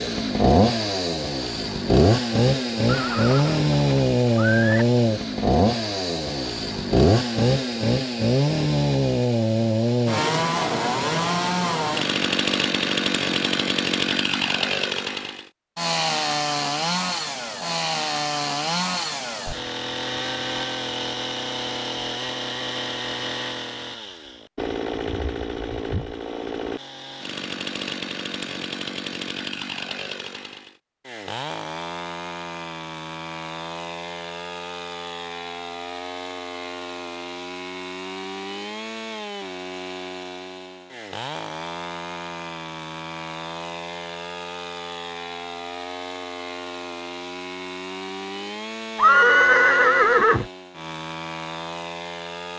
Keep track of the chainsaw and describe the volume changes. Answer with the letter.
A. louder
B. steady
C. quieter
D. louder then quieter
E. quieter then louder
C.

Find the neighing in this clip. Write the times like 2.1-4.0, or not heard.
2.9-4.8, 49.0-50.5.